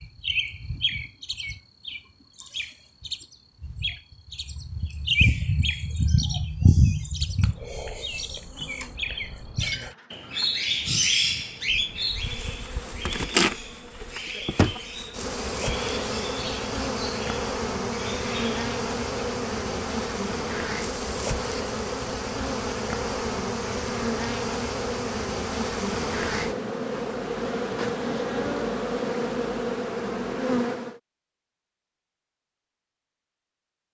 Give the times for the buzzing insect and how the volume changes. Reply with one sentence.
The buzzing insect can be heard from 7.3 to 31.0 s, getting louder.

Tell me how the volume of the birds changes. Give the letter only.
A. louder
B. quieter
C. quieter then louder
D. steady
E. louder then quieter
E.